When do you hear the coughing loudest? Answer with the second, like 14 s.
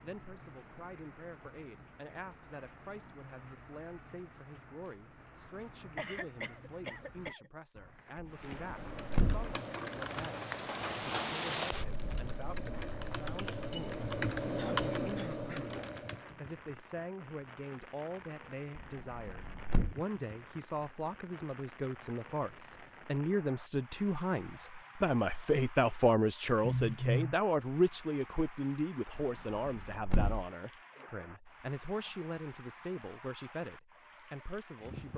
27 s.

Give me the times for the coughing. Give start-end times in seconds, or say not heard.
6.0-7.5, 14.6-15.7, 26.6-27.4.